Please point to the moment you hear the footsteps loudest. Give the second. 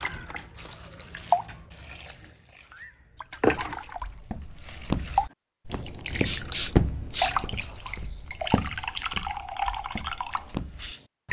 7 s.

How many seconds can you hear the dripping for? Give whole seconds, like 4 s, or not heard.
11 s.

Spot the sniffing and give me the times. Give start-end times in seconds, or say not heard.
6.2-7.3.